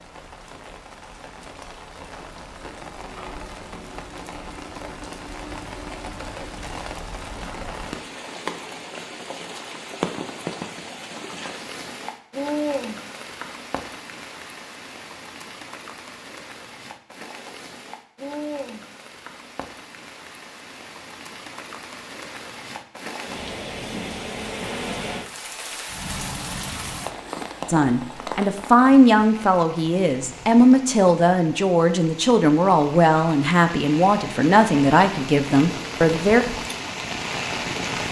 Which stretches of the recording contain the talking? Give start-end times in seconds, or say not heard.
27.6-36.5.